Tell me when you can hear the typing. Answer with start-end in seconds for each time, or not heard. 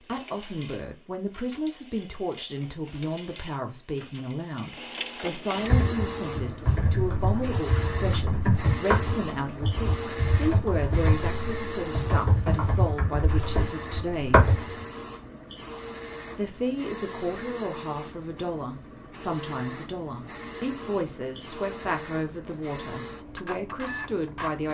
5.7-14.8.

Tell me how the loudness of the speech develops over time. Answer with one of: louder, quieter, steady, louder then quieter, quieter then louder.
steady.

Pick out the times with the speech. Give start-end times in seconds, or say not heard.
0.0-14.4, 16.4-24.6.